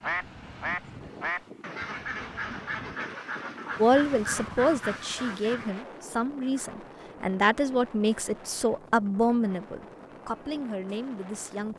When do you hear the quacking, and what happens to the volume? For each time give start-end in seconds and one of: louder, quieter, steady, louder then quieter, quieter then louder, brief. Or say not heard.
0.0-5.8 steady.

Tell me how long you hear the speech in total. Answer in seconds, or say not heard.
8 s.